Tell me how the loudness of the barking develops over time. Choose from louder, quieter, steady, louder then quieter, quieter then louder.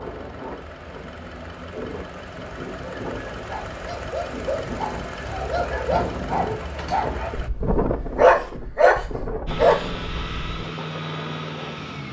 louder.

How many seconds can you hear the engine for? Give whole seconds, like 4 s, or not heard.
10 s.